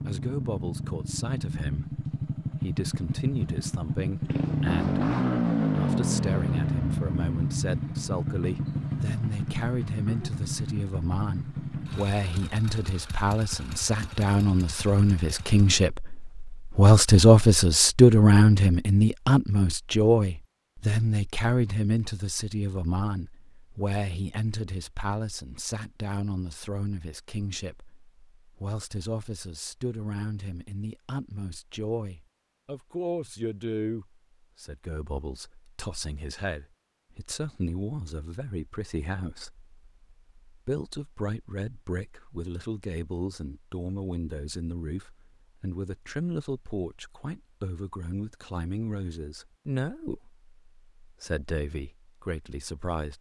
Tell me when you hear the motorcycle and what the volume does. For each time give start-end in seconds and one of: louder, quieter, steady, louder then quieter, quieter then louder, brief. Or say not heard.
0.0-15.8 louder then quieter.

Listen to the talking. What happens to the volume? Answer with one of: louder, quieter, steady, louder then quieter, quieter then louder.
louder then quieter.